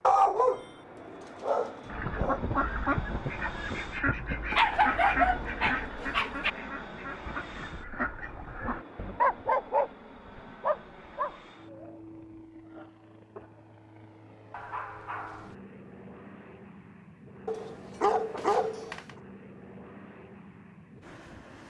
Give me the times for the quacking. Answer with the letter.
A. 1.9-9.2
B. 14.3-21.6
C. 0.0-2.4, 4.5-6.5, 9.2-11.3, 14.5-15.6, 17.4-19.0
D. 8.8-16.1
A.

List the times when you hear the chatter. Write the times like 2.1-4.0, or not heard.
not heard.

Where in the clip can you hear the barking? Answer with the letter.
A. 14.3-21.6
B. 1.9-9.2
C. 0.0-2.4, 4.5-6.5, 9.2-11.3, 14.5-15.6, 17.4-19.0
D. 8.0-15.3
C.